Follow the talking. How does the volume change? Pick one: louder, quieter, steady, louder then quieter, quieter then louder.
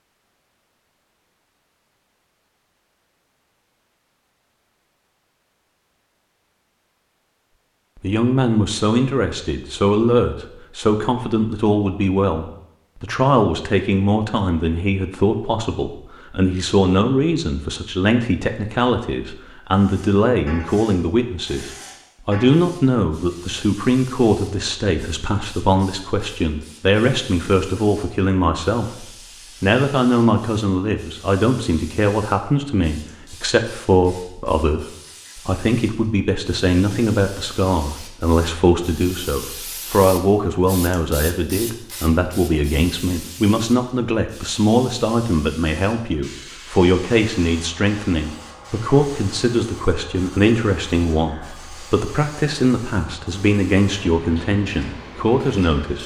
steady.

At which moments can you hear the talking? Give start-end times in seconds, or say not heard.
8.0-56.0.